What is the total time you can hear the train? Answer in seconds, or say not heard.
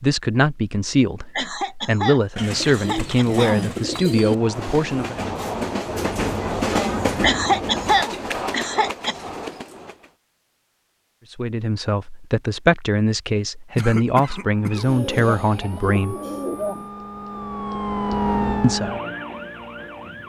6 s.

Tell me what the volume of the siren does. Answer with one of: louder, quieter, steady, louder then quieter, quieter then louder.
louder then quieter.